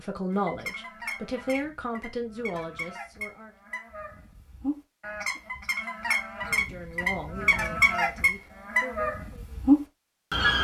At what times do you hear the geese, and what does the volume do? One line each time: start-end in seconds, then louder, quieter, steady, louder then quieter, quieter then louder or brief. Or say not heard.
0.3-10.6 louder.